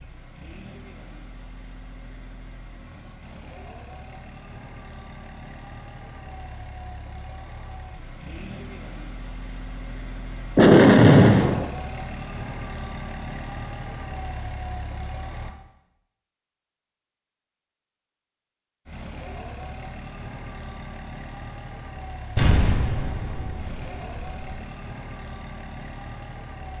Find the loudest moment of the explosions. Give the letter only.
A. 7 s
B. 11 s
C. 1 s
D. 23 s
B.